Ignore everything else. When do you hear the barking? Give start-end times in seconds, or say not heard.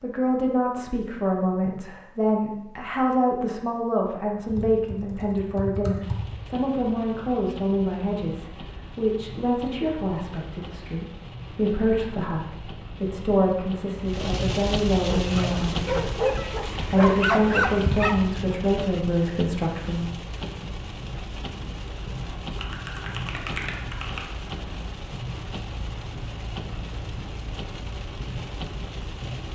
15.1-18.6.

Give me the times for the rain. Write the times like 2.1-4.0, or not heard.
6.0-29.5.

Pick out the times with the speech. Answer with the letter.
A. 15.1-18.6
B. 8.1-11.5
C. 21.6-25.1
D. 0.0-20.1
D.